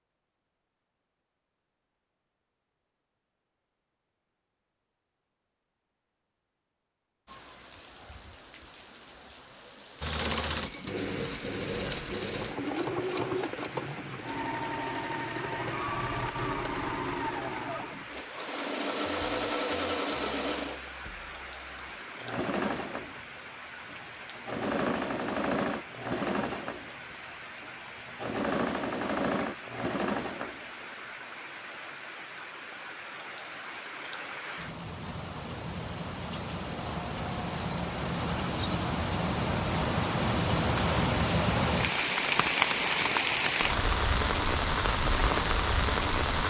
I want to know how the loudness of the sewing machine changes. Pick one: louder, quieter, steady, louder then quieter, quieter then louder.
steady.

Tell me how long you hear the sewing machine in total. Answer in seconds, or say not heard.
21 s.